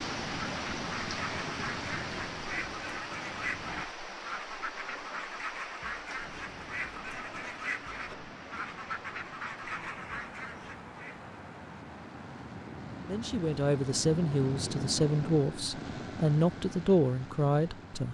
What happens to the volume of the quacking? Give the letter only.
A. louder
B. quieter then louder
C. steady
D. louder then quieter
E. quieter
C.